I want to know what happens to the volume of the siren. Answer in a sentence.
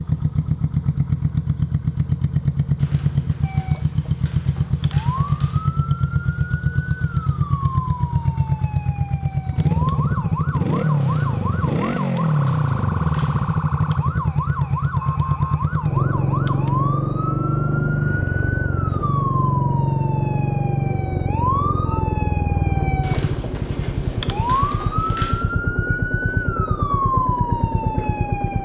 The volume of the siren goes up.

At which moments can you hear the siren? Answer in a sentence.
The siren can be heard from 3.4 to 28.6 s.